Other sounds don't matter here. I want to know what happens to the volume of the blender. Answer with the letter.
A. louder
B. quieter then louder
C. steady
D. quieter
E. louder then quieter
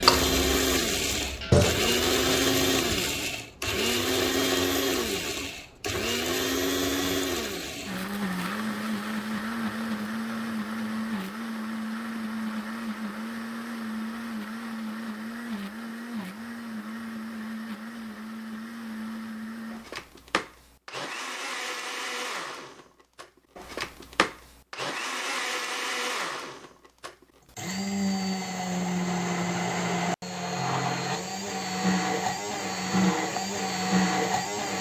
B.